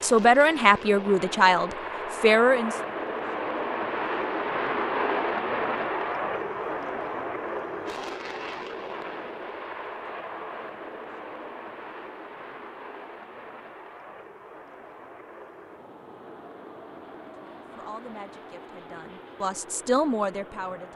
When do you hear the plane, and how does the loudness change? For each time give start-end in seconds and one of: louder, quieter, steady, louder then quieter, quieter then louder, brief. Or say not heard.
0.0-20.9 quieter.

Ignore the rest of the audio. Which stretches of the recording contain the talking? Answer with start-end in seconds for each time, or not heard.
0.0-2.8, 17.4-20.9.